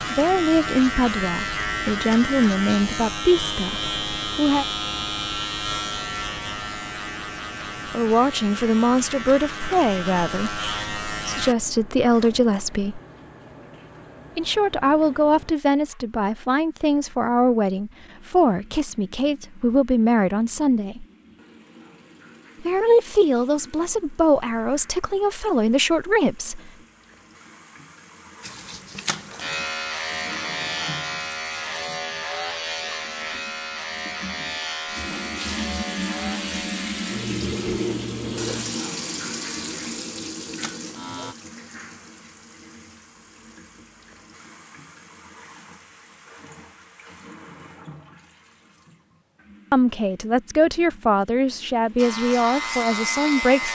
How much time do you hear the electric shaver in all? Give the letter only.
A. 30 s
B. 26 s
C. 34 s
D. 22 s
B.